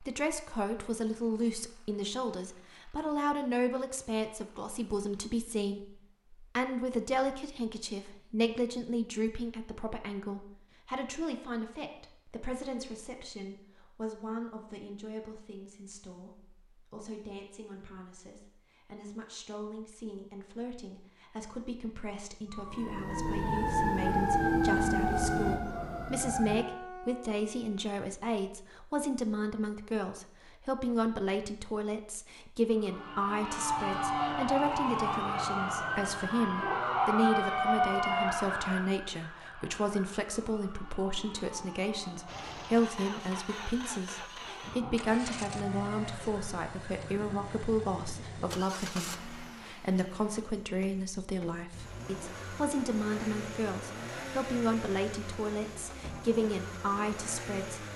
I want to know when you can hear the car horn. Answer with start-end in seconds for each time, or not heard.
not heard.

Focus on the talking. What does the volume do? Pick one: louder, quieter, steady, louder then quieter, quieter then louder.
quieter then louder.